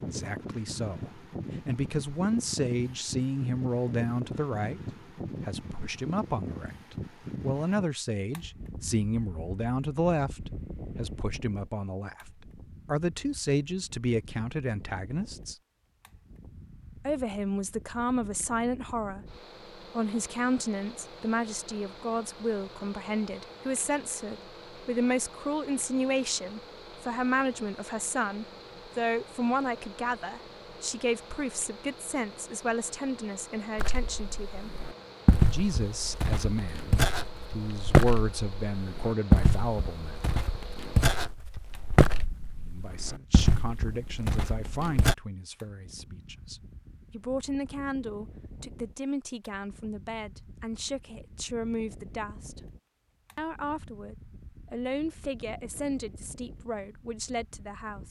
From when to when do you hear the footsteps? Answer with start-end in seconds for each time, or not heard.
33.8-45.1.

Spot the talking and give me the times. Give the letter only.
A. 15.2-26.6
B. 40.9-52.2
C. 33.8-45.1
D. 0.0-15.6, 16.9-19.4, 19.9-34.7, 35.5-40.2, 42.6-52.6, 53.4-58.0
D.